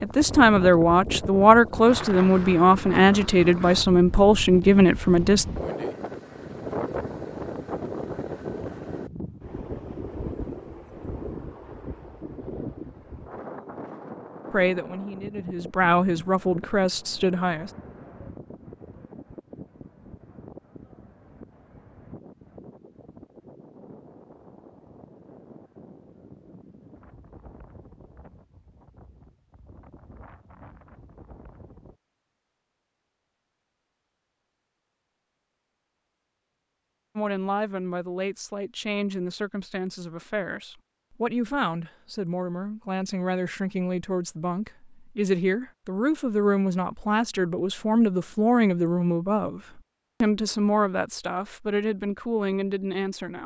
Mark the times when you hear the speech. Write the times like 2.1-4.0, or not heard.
0.0-5.5, 14.5-17.7, 37.1-53.4.